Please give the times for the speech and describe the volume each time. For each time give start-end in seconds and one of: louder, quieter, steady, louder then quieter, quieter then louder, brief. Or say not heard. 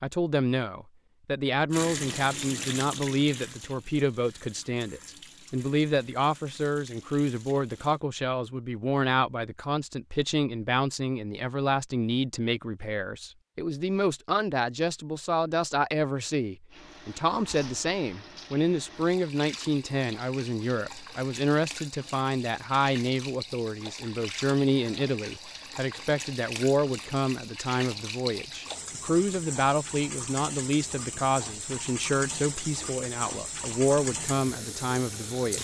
0.0-35.6 steady.